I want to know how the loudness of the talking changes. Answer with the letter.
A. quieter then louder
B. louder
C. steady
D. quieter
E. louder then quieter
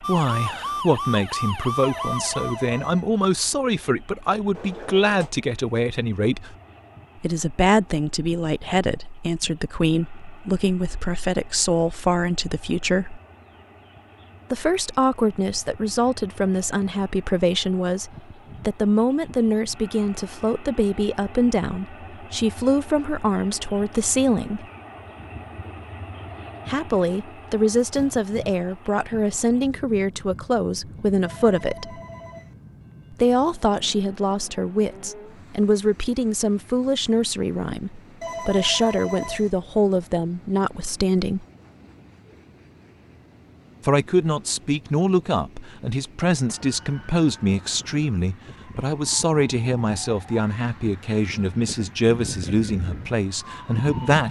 C.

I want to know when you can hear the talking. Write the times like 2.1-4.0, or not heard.
0.0-6.5, 7.2-13.2, 14.5-24.6, 26.6-32.0, 33.1-41.5, 43.8-54.2.